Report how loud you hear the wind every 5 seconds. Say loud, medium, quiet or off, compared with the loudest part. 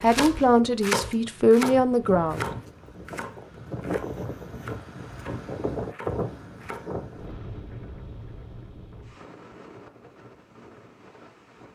loud, loud, quiet.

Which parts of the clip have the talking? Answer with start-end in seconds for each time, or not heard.
0.0-2.5.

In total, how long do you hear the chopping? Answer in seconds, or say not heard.
7 s.